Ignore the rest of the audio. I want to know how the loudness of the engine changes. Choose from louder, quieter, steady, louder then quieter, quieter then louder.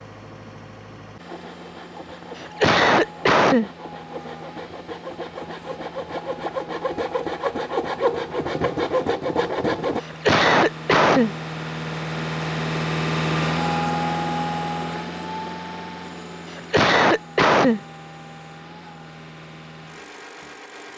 louder then quieter.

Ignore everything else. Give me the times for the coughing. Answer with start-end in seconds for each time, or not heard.
2.4-3.7, 10.0-11.3, 16.5-17.8.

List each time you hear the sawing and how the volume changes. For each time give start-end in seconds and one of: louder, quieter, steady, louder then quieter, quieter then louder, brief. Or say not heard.
1.2-10.0 louder.